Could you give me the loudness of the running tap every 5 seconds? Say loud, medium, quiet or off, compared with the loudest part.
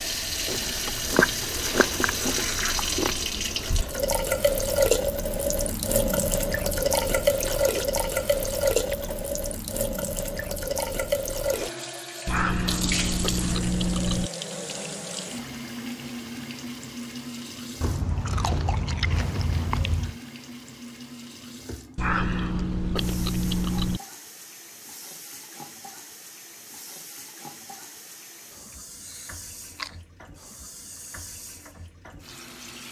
loud, loud, medium, medium, quiet, quiet, quiet.